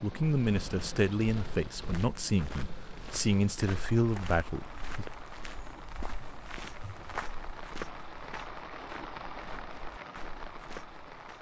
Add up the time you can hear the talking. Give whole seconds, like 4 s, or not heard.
5 s.